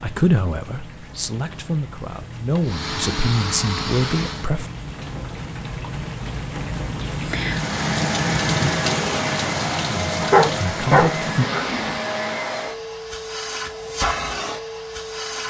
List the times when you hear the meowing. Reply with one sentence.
You can't hear the meowing here.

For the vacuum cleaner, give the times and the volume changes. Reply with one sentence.
You can hear the vacuum cleaner briefly from 2.6 to 4.5 s; and from 7.5 to 15.4 s, at a steady volume.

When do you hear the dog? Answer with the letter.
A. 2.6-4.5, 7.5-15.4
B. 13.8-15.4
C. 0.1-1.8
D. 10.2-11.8
D.